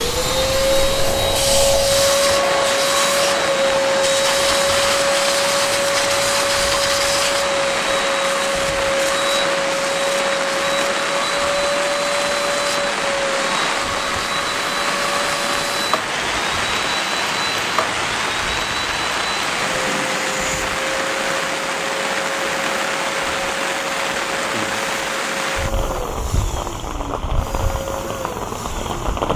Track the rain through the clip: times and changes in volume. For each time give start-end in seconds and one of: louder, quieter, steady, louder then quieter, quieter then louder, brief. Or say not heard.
0.0-29.3 steady.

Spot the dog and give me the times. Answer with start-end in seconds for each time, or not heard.
not heard.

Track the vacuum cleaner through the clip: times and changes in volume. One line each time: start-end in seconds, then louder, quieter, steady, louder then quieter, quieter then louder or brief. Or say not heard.
0.0-29.3 quieter.